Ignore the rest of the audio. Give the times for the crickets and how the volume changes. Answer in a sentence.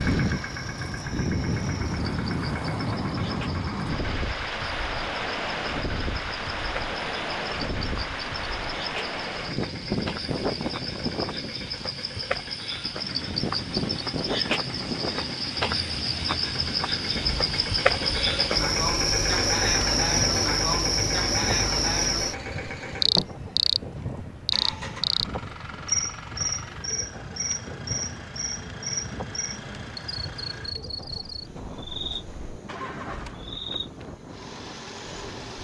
You can hear the crickets from 0.0 to 35.5 s, getting louder then quieter.